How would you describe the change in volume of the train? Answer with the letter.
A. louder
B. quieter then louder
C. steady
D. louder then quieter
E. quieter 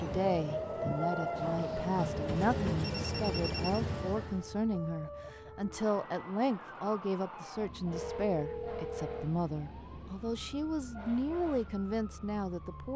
A.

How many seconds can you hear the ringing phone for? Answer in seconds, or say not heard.
4 s.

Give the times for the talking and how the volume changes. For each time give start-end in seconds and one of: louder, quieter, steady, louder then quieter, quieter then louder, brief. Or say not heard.
0.0-12.9 steady.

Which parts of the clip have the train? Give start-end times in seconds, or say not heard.
0.0-4.5.